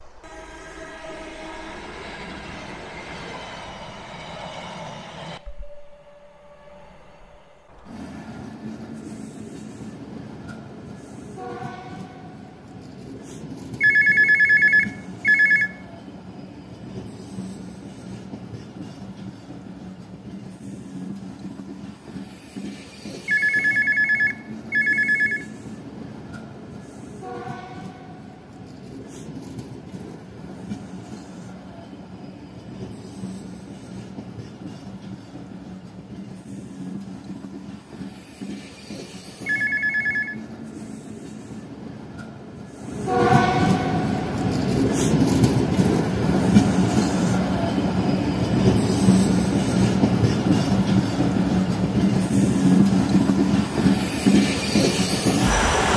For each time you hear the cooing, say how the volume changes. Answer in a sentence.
The cooing can't be heard in this clip.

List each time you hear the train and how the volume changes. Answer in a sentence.
The train can be heard from 0.0 to 55.9 s, getting louder.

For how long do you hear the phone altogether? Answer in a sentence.
You can hear the phone for 5 seconds altogether.